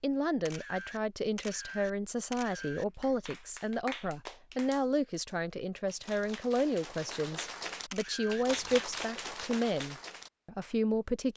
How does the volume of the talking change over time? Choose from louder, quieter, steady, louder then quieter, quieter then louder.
steady.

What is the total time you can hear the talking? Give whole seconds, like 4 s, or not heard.
11 s.